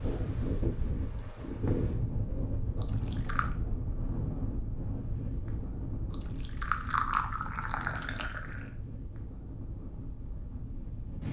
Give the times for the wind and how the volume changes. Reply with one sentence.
You can hear the wind from 0.0 to 11.2 s, getting quieter.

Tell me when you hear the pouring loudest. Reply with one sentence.
The volume of the pouring peaks at 7 seconds.